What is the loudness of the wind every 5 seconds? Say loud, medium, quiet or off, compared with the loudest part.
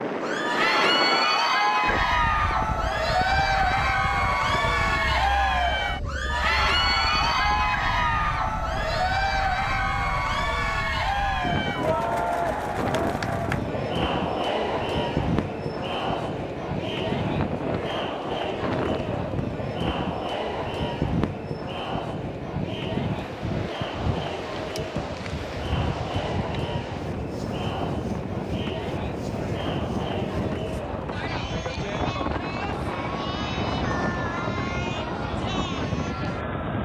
loud, medium, loud, loud, loud, loud, loud, loud.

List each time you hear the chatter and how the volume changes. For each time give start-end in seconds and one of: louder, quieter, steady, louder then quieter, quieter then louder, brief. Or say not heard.
0.1-36.8 quieter.